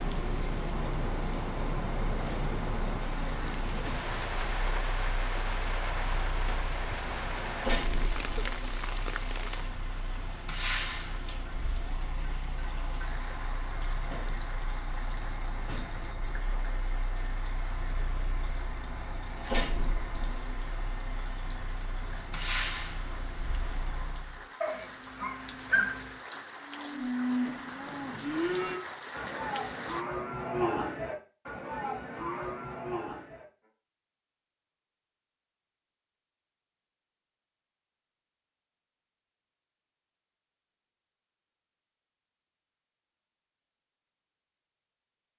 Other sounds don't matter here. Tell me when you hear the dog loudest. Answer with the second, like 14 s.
26 s.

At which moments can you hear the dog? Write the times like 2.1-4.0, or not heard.
24.6-26.1.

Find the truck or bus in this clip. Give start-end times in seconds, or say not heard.
0.1-24.4.